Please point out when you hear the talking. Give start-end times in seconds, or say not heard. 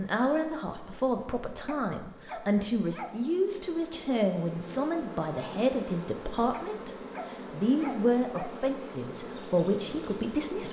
0.0-10.6.